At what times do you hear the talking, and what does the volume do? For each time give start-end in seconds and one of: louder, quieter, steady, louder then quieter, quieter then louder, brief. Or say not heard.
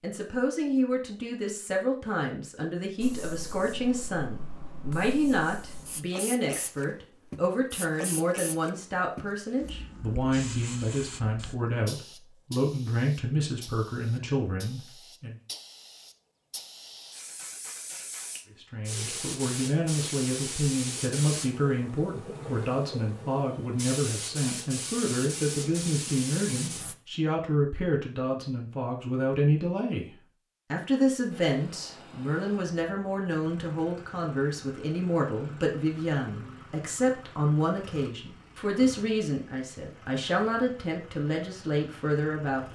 0.0-15.3 steady
18.6-42.7 steady.